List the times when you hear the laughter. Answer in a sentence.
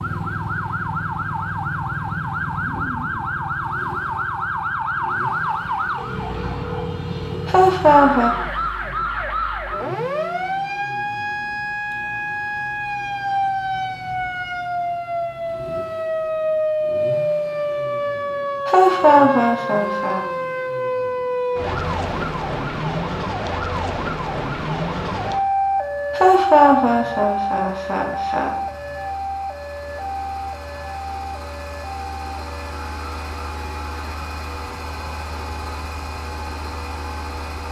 You can hear the laughter from 7.5 to 8.3 s, from 18.6 to 20.2 s and from 26.1 to 28.6 s.